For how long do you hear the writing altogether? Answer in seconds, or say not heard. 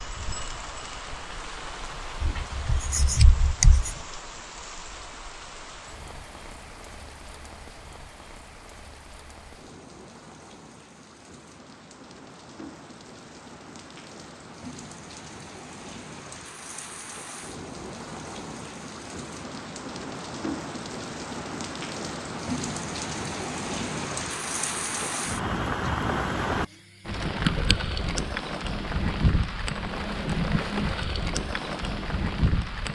2 s.